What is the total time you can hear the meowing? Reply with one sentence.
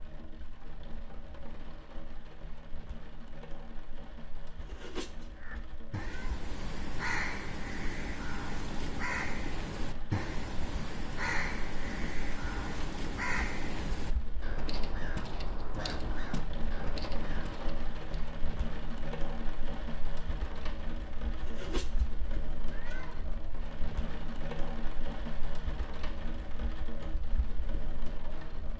You can hear the meowing for 4 seconds altogether.